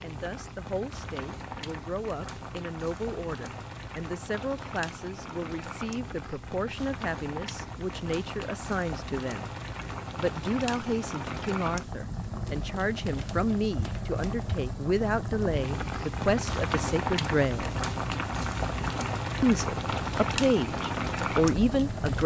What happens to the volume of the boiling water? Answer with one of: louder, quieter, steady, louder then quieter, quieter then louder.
louder.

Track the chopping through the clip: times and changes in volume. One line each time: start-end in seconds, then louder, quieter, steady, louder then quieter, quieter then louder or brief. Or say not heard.
not heard.